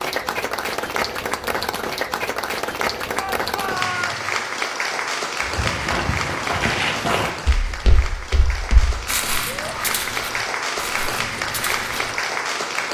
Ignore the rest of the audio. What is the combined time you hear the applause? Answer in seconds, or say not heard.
13 s.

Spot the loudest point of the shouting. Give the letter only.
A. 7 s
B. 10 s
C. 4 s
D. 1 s
C.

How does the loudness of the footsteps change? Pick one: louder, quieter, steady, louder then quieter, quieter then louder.
quieter.